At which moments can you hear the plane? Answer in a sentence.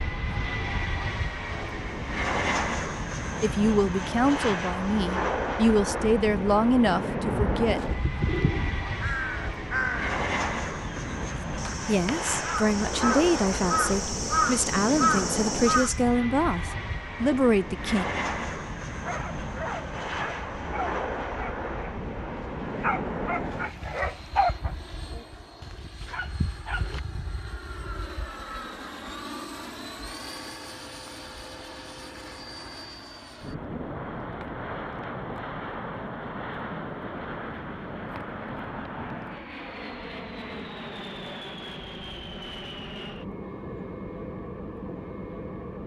You can hear the plane from 0.0 to 45.8 s.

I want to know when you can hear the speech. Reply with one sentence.
You can hear the speech from 3.4 to 7.8 s and from 11.8 to 18.1 s.